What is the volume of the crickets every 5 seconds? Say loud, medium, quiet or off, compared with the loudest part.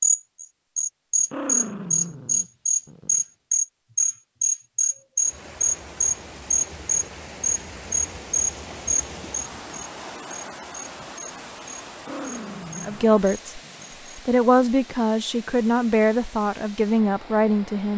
loud, loud, quiet, off.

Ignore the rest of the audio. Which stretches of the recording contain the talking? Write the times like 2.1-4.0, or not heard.
12.8-17.9.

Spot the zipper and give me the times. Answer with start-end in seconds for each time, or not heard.
not heard.